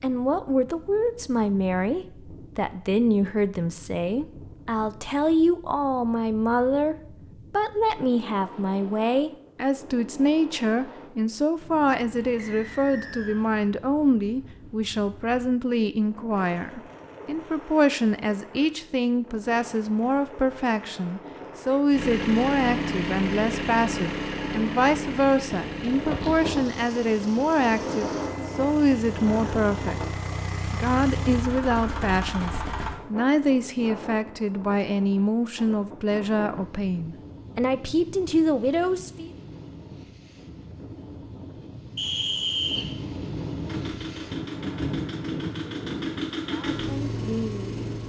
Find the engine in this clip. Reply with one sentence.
You can hear the engine from 21.9 to 33.0 s and from 43.5 to 48.0 s.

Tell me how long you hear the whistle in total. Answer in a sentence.
The whistle can be heard for 2 seconds in total.